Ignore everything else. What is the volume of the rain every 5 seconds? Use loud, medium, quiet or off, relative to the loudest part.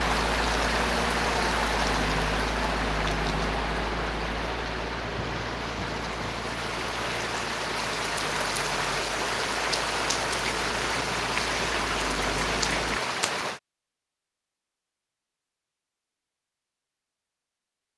loud, loud, loud, off.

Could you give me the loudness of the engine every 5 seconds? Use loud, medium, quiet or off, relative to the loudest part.
loud, medium, medium, off.